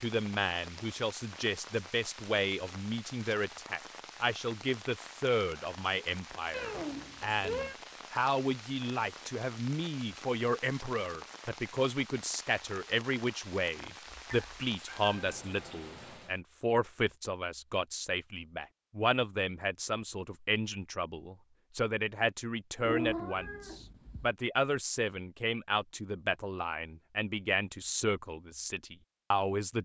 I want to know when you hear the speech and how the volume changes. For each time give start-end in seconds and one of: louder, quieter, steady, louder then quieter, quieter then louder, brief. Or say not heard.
0.0-29.7 steady.